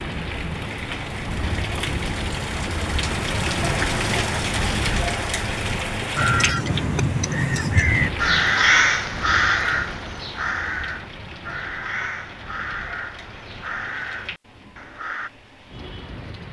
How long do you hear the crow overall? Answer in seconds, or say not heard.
9 s.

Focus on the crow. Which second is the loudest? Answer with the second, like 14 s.
9 s.